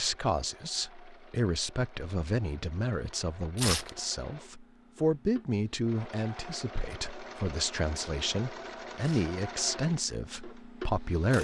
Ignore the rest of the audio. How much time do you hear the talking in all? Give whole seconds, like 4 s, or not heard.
11 s.